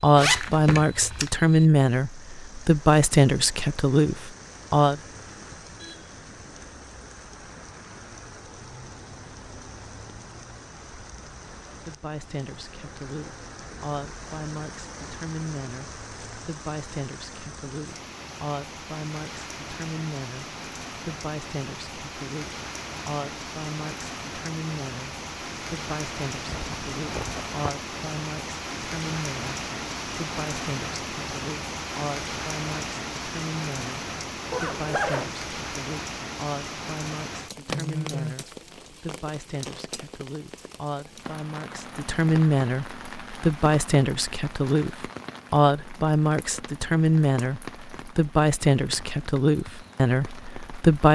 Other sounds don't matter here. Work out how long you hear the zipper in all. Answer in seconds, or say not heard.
3 s.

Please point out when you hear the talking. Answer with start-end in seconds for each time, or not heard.
0.0-5.0, 11.8-51.1.